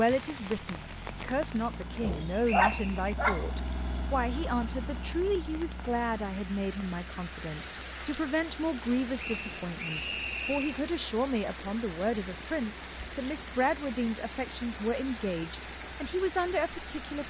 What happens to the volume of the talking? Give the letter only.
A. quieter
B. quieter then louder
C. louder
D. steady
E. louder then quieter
D.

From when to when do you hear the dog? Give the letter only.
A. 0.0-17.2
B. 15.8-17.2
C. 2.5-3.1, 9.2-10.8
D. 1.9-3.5
D.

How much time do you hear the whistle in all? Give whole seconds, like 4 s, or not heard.
2 s.